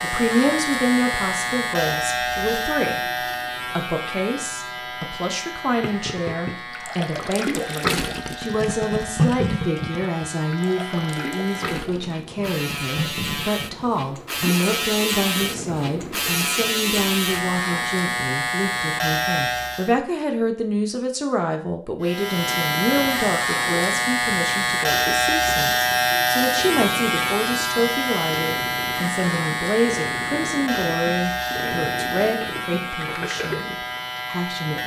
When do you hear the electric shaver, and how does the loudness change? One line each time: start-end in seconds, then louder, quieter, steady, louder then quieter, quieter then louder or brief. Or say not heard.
0.0-19.9 quieter then louder
22.0-34.8 quieter.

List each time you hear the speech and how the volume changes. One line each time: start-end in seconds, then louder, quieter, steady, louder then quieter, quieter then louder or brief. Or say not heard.
0.0-34.8 steady.